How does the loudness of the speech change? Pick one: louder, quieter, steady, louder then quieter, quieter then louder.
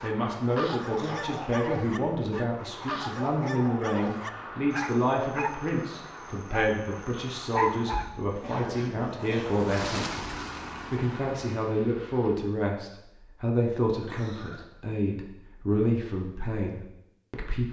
steady.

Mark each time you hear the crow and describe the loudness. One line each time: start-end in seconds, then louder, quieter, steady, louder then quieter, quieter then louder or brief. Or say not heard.
not heard.